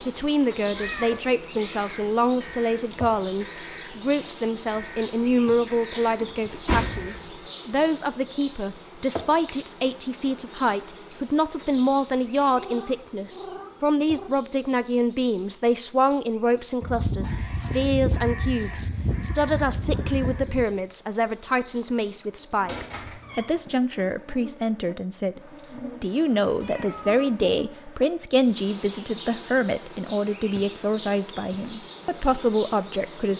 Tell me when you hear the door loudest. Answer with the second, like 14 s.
7 s.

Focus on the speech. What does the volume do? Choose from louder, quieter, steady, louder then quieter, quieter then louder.
steady.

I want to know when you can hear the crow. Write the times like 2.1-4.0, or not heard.
0.8-7.3, 16.8-20.6.